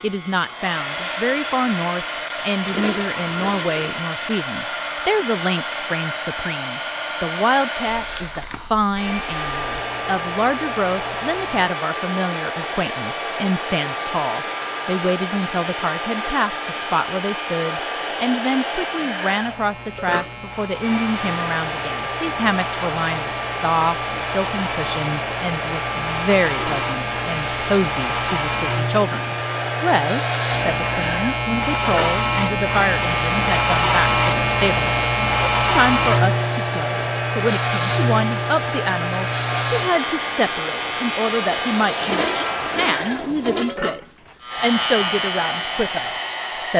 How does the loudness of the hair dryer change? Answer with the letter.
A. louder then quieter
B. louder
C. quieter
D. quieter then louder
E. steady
E.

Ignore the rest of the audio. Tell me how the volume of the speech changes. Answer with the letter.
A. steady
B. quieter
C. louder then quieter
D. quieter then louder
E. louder
A.